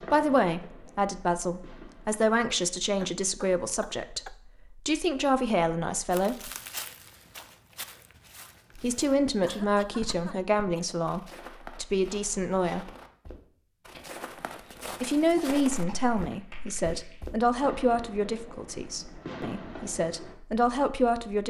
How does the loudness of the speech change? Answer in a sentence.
The loudness of the speech stays about the same.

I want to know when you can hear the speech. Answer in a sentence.
You can hear the speech from 0.1 to 6.5 s, from 8.8 to 12.9 s and from 15.0 to 21.4 s.